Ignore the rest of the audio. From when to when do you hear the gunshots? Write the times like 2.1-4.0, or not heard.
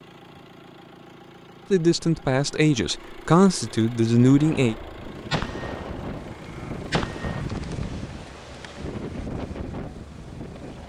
4.3-7.5.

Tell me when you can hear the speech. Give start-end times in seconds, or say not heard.
1.7-4.8.